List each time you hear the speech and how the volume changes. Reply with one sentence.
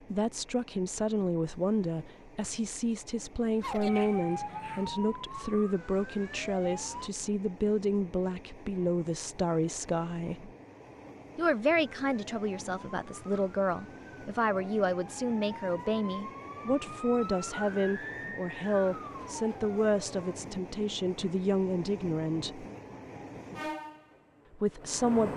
You can hear the speech from 0.1 to 10.5 s, at a steady volume; from 11.3 to 22.6 s, at a steady volume; and briefly from 24.6 to 25.3 s.